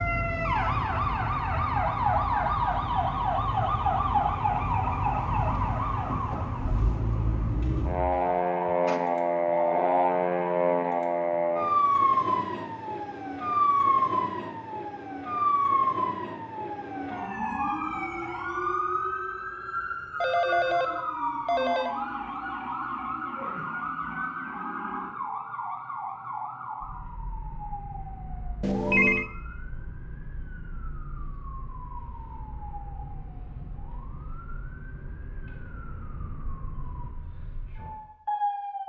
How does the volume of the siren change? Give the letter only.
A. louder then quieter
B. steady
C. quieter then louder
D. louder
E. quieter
E.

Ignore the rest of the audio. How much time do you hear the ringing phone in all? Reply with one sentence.
You can hear the ringing phone for 4 seconds altogether.